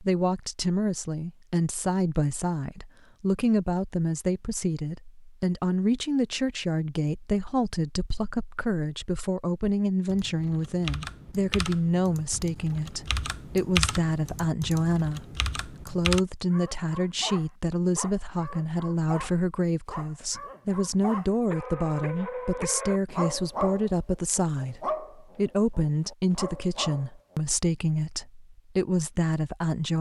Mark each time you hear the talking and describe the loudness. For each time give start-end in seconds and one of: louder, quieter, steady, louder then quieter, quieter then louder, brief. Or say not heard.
0.0-29.9 steady.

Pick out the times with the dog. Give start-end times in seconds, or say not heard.
16.5-27.4.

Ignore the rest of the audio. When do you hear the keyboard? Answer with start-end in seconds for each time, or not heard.
10.1-16.2.